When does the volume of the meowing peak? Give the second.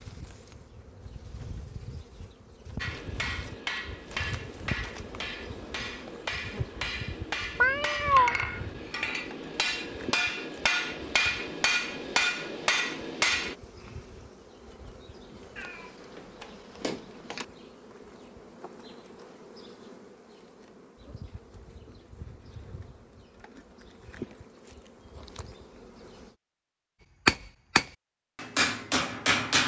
8 s.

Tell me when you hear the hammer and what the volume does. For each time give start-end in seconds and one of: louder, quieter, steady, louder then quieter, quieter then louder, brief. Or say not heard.
2.8-13.6 louder
27.2-29.6 brief.